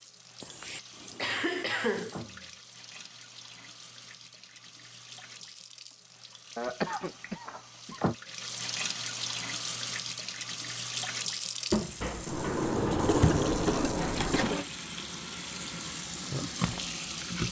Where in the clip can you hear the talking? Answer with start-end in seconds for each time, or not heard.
not heard.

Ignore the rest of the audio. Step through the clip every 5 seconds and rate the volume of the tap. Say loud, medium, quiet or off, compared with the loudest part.
quiet, medium, loud, loud.